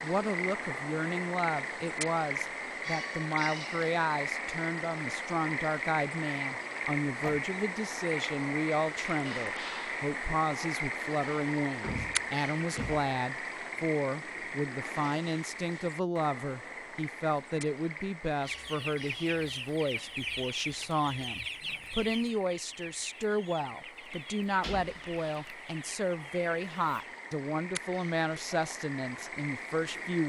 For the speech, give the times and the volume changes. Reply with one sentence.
You can hear the speech from 0.0 to 30.2 s, at a steady volume.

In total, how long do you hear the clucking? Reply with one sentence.
You can hear the clucking for 9 seconds altogether.